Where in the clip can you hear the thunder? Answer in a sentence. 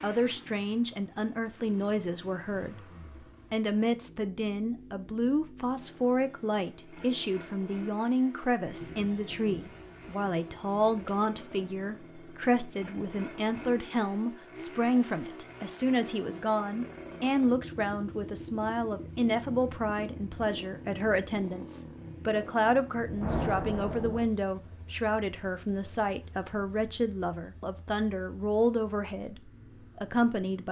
The thunder can be heard from 8.7 to 11.2 s and from 23.1 to 24.2 s.